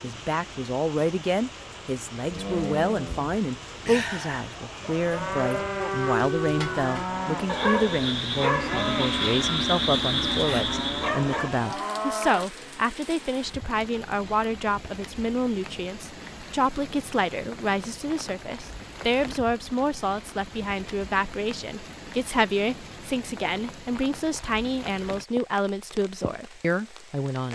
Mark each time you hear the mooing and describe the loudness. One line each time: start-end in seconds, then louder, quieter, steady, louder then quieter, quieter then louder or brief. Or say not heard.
2.2-12.5 steady.